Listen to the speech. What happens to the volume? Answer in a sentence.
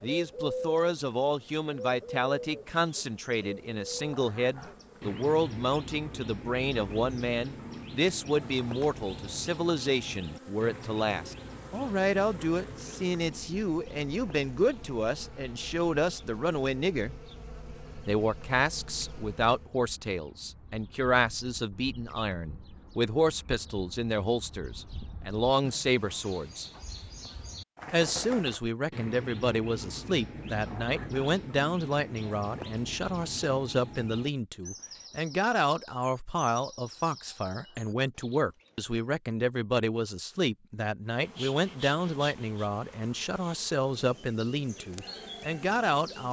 The loudness of the speech stays about the same.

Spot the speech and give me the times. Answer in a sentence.
The speech can be heard from 0.0 to 17.1 s, from 18.1 to 26.7 s and from 27.9 to 46.2 s.